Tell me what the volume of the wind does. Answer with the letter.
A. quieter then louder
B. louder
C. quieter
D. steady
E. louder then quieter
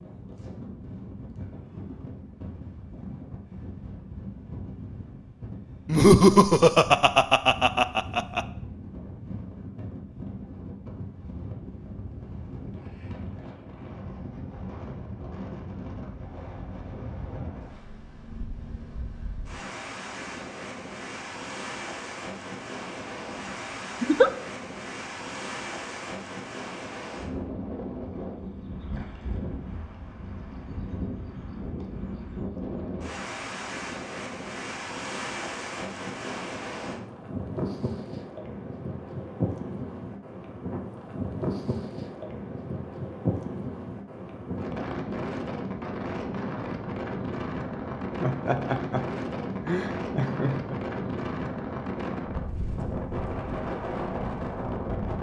B.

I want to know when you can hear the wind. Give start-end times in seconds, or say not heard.
0.0-55.1.